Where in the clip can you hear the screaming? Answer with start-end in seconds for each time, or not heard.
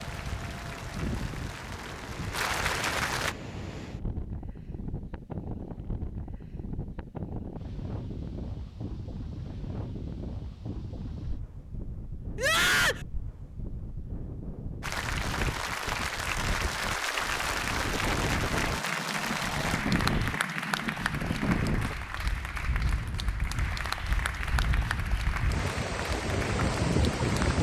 12.3-13.1.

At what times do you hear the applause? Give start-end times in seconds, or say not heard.
0.0-3.4, 14.8-27.5.